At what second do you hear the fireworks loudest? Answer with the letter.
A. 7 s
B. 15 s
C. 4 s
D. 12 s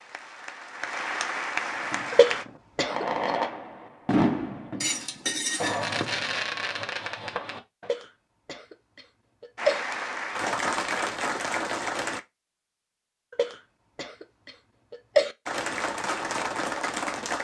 C.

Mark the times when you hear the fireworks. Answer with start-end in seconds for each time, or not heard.
1.8-7.9.